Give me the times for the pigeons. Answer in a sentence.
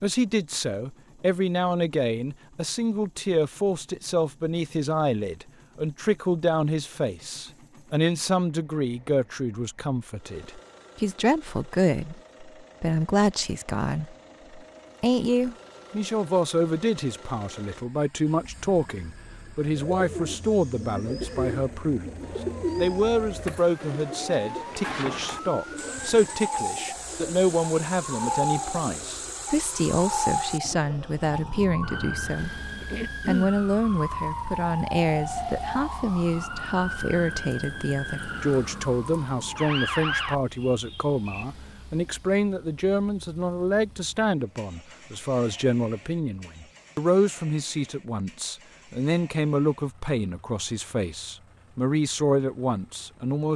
The pigeons can be heard from 19.6 to 29.4 s.